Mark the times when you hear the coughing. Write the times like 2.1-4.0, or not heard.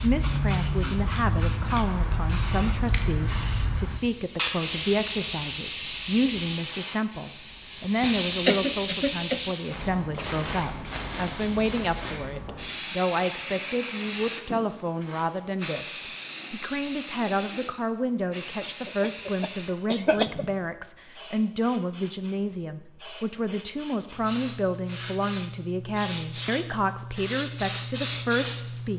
7.8-9.5, 18.6-20.4.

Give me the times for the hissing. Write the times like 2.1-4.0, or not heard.
0.0-28.9.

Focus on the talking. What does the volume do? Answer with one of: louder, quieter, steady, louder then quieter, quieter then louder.
steady.